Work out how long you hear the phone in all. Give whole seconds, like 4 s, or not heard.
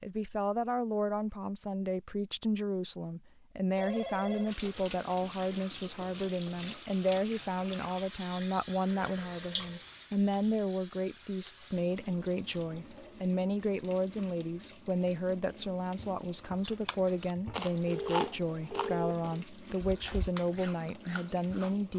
3 s.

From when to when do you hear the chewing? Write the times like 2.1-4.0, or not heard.
16.6-21.8.